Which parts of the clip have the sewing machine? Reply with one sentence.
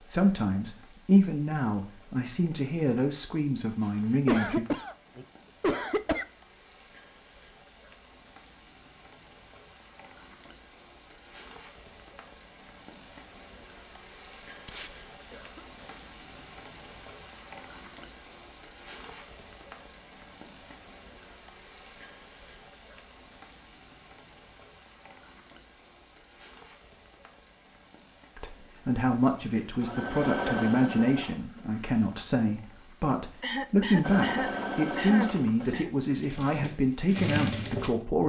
You can hear the sewing machine from 29.6 to 32.1 s and from 34.0 to 38.2 s.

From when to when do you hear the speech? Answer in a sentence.
The speech can be heard from 0.1 to 4.7 s and from 28.4 to 38.2 s.